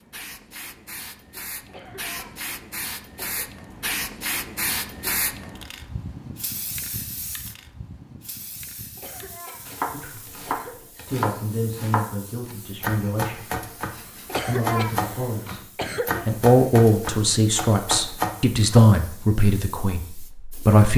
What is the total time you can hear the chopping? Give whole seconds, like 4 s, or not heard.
9 s.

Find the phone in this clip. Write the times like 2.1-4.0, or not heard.
not heard.